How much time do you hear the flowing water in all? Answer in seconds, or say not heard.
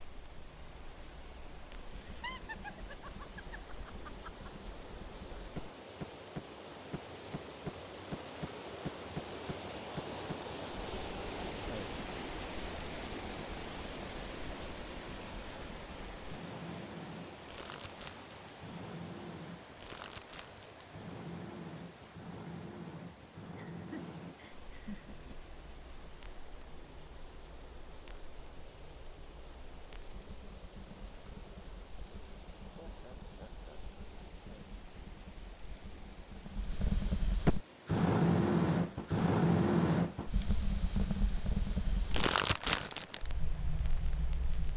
45 s.